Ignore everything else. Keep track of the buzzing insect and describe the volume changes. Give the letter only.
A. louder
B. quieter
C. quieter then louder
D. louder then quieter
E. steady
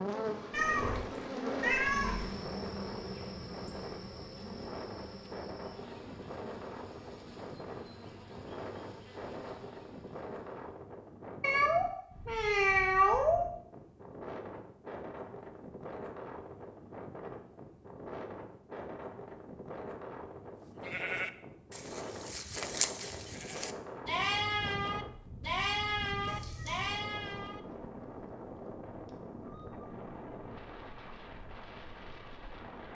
B.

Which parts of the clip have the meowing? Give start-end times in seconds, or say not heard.
0.5-2.4, 11.4-13.4, 26.2-26.9.